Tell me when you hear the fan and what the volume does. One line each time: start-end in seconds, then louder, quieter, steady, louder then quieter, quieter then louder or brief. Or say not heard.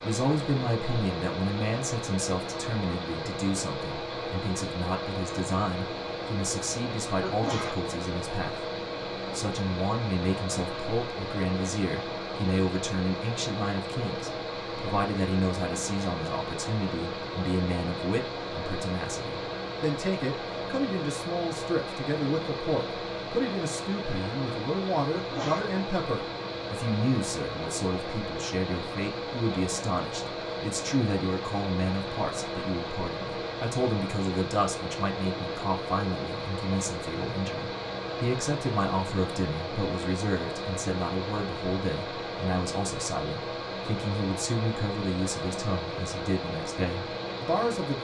0.0-47.9 steady.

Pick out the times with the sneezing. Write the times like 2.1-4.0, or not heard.
7.2-7.8, 25.1-25.8.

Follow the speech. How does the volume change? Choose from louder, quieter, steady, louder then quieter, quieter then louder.
steady.